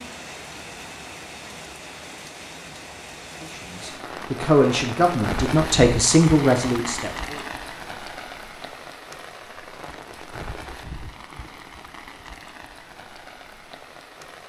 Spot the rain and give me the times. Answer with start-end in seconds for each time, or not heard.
0.0-14.4.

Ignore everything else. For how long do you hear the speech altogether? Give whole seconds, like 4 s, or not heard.
4 s.